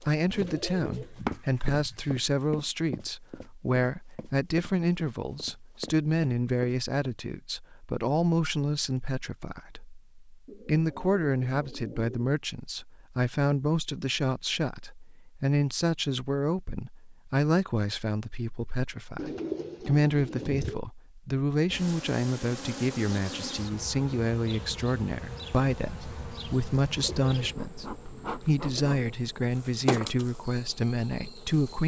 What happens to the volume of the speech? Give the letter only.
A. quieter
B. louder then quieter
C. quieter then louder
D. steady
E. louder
D.